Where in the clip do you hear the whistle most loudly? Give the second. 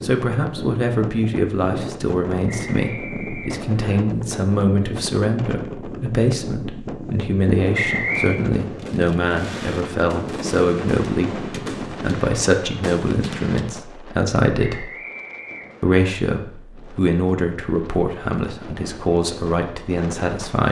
8 s.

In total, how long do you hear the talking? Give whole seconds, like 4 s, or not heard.
20 s.